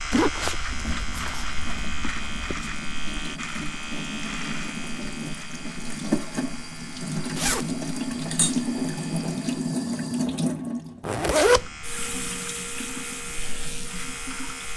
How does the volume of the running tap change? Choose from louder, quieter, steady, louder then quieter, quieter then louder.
louder then quieter.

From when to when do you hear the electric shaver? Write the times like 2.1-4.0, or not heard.
0.0-9.6, 11.4-14.7.